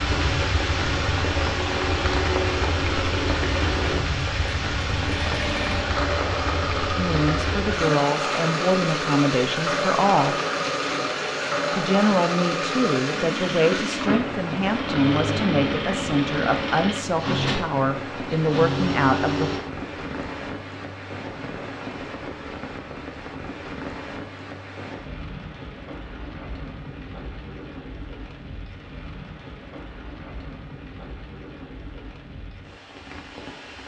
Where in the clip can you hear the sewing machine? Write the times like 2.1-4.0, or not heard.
0.0-19.6.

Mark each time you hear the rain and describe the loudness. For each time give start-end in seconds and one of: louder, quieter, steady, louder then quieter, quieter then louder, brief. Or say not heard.
0.0-33.8 quieter.